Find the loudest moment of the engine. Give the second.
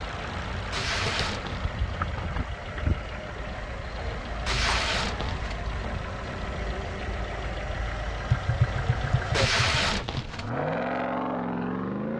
11 s.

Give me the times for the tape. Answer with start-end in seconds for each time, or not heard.
0.7-1.6, 4.5-5.6, 9.3-10.5.